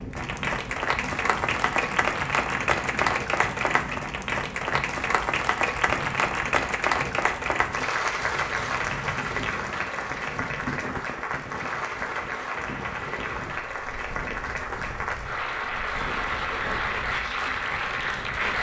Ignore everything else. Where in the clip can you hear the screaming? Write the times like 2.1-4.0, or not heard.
not heard.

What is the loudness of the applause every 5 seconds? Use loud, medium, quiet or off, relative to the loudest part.
loud, loud, medium, loud.